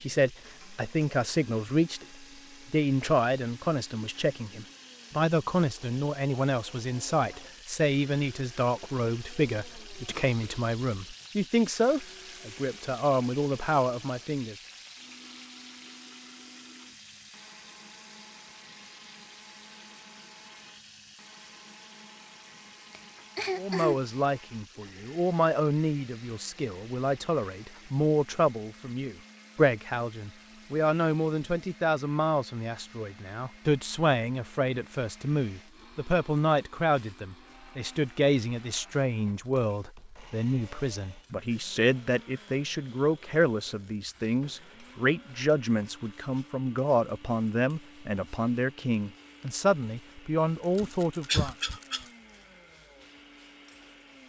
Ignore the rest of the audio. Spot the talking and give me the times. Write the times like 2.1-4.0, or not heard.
0.0-14.6, 23.6-51.5.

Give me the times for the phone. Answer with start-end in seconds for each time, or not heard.
not heard.